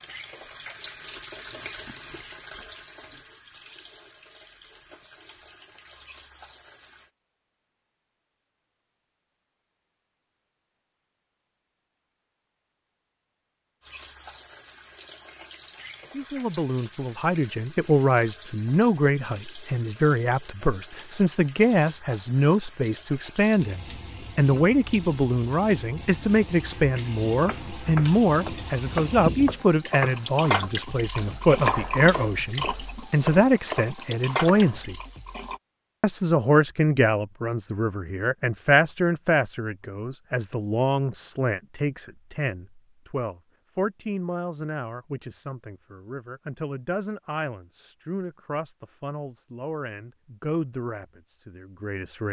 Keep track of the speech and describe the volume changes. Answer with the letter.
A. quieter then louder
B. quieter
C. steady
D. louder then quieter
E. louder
B.